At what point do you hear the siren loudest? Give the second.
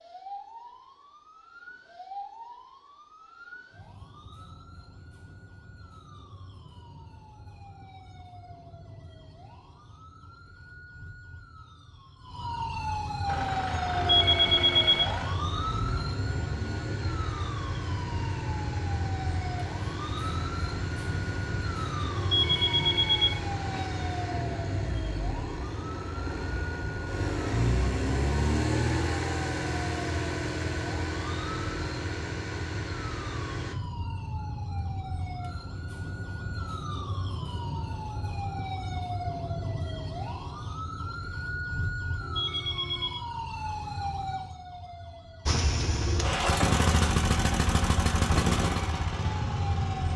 14 s.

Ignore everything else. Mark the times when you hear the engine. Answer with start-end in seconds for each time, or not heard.
13.2-33.8, 45.5-50.1.